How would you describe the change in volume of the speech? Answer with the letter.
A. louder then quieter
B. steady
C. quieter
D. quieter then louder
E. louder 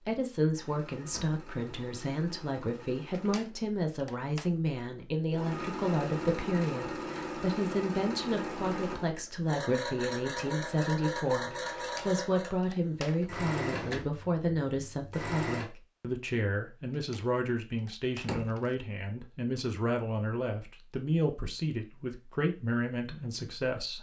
B.